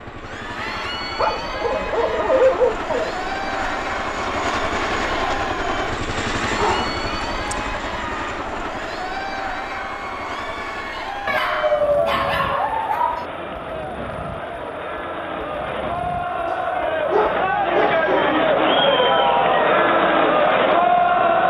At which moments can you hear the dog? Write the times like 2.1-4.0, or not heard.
1.1-3.1, 6.5-7.5, 11.2-13.2, 16.4-18.4.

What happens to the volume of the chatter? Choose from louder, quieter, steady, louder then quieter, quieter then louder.
louder.